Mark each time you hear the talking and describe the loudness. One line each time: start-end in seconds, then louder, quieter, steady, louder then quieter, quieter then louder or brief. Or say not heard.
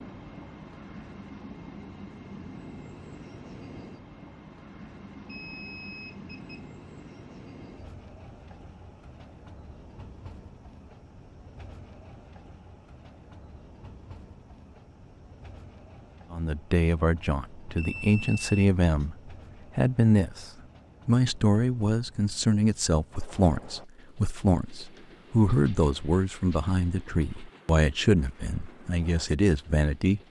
16.3-30.2 steady.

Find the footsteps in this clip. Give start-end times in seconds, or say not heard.
not heard.